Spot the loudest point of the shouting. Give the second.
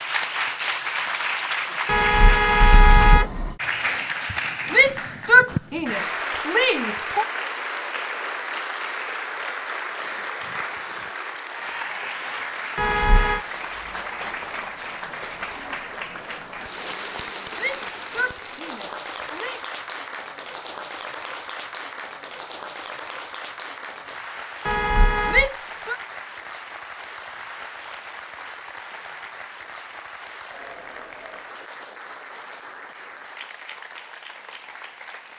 5 s.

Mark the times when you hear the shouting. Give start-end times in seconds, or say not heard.
4.7-7.2, 17.6-19.6, 25.2-25.9.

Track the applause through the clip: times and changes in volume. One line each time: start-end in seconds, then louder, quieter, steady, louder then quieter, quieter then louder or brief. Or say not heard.
0.0-35.3 quieter.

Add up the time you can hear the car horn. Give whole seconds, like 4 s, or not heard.
3 s.